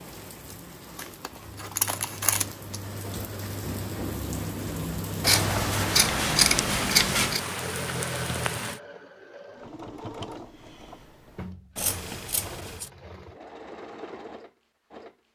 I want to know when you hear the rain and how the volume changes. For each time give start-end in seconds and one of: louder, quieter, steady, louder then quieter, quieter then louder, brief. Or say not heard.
0.0-8.8 louder.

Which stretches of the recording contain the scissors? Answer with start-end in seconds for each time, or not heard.
0.9-2.8, 5.2-7.4, 11.8-12.9.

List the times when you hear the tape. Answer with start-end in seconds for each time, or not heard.
not heard.